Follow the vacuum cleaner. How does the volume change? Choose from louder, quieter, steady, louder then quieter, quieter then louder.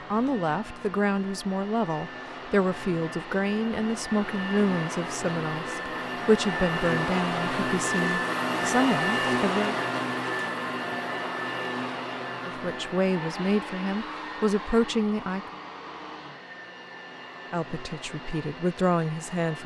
louder then quieter.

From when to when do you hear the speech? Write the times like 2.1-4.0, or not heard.
0.1-9.8, 12.4-15.5, 17.5-19.6.